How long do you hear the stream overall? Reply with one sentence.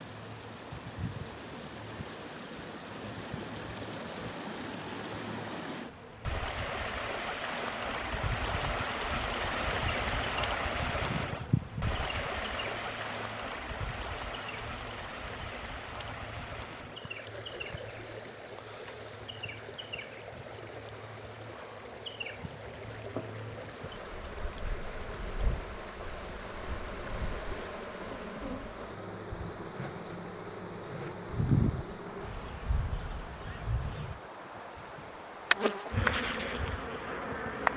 You can hear the stream for 38 seconds altogether.